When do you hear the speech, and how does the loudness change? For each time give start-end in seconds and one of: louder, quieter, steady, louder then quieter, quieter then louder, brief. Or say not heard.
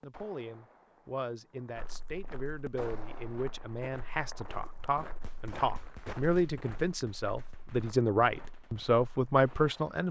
0.0-10.0 louder.